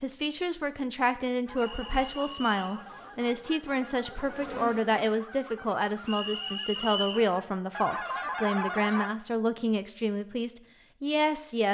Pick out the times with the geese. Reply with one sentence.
You can hear the geese from 1.4 to 9.1 s.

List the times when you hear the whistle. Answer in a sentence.
You can hear the whistle from 1.6 to 2.8 s and from 6.0 to 7.2 s.